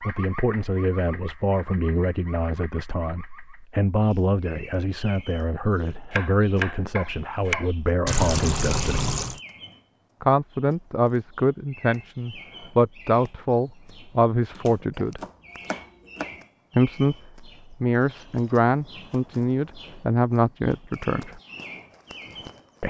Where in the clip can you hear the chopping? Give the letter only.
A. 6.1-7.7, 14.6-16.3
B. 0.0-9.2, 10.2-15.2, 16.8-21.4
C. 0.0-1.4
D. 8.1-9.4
A.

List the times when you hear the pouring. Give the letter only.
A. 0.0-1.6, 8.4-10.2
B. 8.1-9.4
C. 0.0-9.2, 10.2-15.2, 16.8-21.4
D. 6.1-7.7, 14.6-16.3
B.